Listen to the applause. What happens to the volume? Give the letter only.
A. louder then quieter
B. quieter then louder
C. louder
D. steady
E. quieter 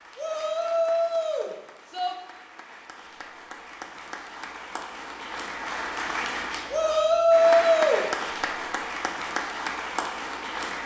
C.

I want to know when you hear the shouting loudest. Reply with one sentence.
The volume of the shouting peaks at 7 seconds.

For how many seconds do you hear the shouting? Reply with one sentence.
The shouting can be heard for 3 seconds in total.